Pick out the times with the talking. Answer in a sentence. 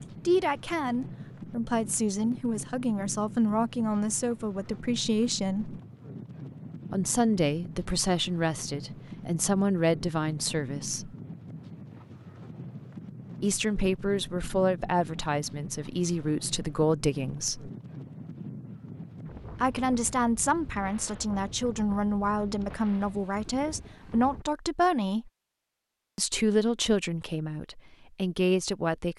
You can hear the talking from 0.2 to 5.8 s, from 6.9 to 11.2 s, from 13.4 to 17.7 s, from 19.6 to 25.3 s and from 26.1 to 29.1 s.